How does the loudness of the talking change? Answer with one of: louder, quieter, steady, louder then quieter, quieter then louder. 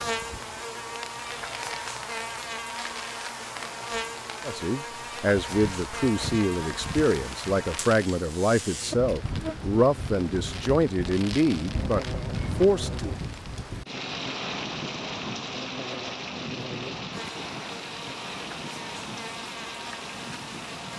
steady.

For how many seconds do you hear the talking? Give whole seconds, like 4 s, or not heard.
9 s.